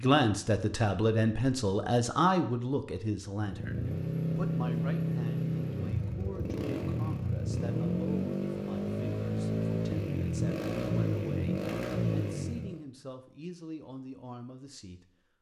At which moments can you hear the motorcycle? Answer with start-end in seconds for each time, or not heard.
3.4-12.8.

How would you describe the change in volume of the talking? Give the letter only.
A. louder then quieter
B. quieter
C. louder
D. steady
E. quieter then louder
B.